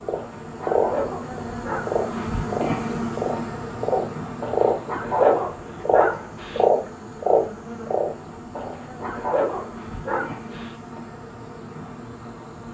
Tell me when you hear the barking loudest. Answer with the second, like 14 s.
5 s.